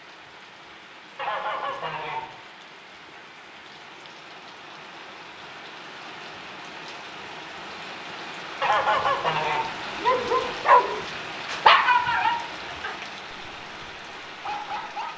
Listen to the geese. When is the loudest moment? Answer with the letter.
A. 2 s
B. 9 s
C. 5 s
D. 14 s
B.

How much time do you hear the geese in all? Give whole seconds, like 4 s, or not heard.
2 s.